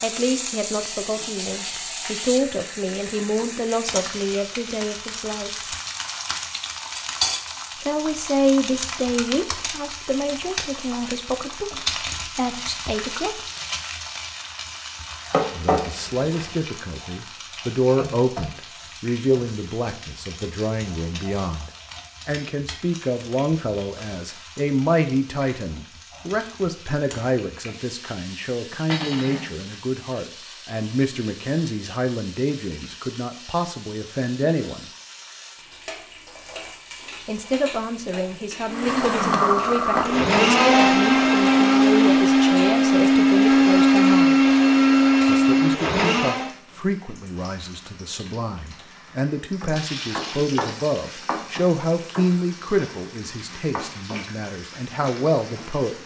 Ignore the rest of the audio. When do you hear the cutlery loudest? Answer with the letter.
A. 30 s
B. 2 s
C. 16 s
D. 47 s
C.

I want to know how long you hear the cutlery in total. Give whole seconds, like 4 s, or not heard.
2 s.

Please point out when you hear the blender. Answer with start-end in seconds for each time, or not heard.
38.7-46.5.